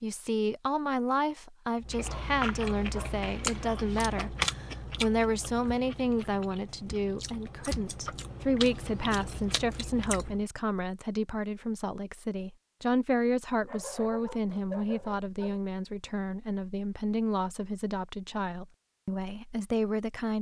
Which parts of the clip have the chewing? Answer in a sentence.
You can hear the chewing from 1.8 to 10.4 s.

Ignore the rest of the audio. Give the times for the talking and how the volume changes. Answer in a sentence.
You can hear the talking from 0.0 to 20.3 s, at a steady volume.